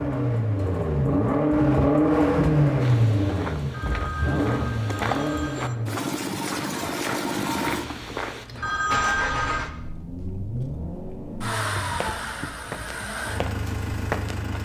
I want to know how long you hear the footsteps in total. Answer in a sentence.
You can hear the footsteps for 8 seconds altogether.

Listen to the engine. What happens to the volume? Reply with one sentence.
The loudness of the engine goes down.